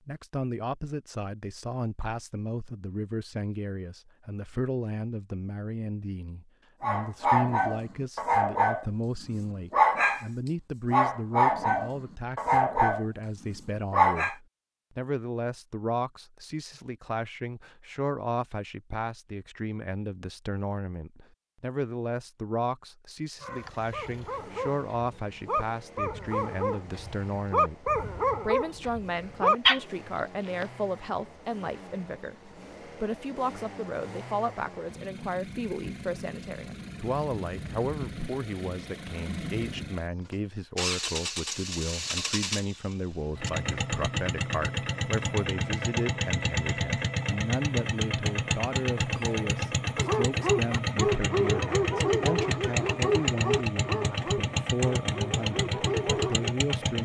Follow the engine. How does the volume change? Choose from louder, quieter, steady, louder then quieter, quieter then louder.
louder.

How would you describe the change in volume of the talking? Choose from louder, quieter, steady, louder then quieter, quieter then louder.
steady.